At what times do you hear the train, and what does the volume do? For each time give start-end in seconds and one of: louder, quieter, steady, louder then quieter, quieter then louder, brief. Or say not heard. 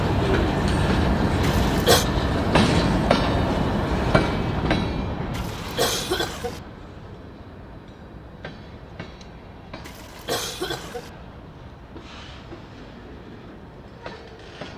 0.0-14.7 quieter.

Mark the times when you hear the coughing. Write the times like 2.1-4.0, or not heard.
1.4-2.0, 5.3-6.6, 9.8-11.1.